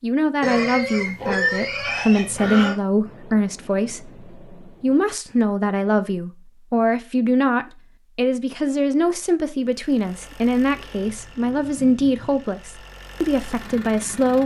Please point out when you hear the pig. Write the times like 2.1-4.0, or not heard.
0.4-2.8, 10.7-12.4.